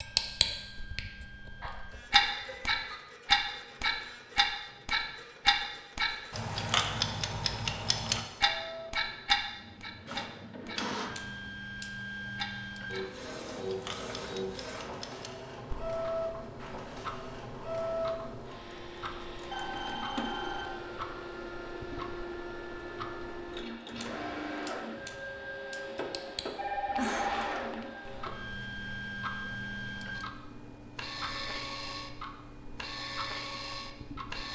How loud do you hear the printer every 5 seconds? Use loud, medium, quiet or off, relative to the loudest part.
quiet, medium, loud, loud, loud, loud, loud.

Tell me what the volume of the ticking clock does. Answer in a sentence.
The volume of the ticking clock goes down.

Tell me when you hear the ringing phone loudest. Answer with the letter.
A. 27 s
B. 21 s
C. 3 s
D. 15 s
A.